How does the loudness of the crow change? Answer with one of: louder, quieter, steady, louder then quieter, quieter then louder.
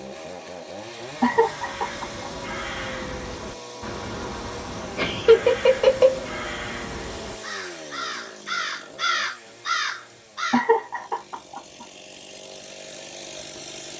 louder.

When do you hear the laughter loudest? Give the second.
5 s.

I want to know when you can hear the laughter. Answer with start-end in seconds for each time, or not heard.
1.2-2.3, 5.0-6.2, 10.5-11.6.